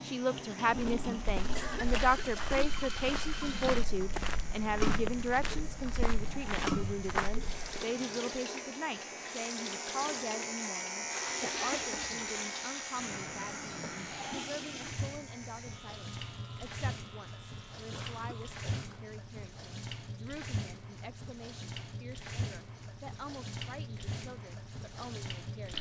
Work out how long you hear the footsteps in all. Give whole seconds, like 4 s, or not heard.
7 s.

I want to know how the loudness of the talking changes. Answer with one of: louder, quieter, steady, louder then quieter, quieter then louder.
quieter.